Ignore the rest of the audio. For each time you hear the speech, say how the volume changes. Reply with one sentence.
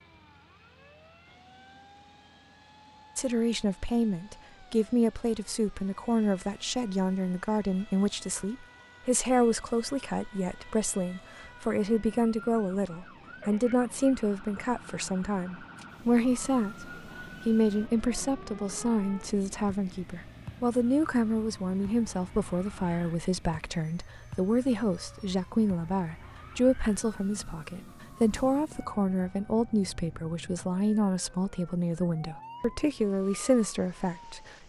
You can hear the speech from 3.1 to 34.5 s, at a steady volume.